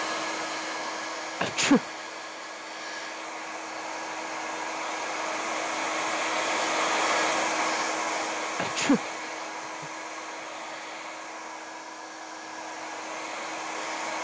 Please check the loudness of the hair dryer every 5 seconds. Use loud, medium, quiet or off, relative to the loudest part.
medium, loud, medium.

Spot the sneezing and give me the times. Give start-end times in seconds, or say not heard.
1.4-1.8, 8.6-9.0.